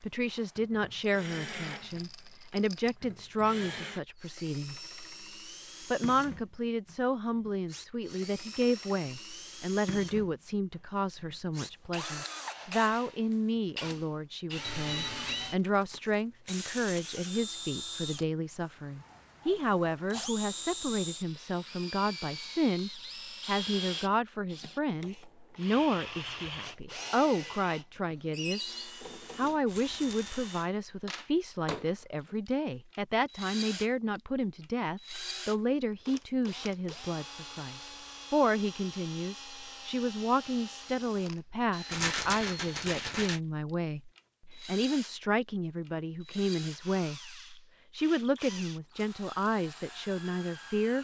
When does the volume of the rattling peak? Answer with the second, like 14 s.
42 s.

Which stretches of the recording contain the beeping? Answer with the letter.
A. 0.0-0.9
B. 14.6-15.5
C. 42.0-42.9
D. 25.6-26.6
B.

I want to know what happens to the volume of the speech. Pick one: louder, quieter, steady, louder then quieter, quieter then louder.
steady.